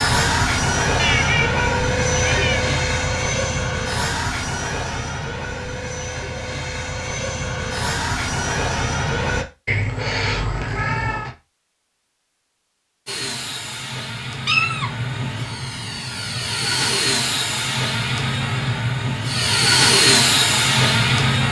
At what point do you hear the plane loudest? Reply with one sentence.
The loudest moment of the plane is at 20 seconds.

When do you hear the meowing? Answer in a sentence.
The meowing can be heard from 0.9 to 2.6 s, from 9.7 to 11.3 s and from 14.4 to 15.1 s.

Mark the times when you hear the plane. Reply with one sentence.
The plane can be heard from 0.0 to 9.4 s and from 13.1 to 21.4 s.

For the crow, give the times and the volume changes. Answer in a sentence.
The crow can't be heard in this clip.